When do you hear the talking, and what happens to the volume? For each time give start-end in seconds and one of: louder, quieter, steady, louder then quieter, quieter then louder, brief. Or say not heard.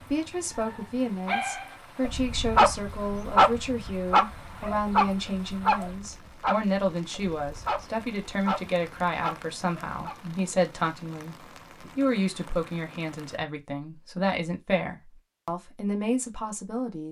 0.1-17.0 steady.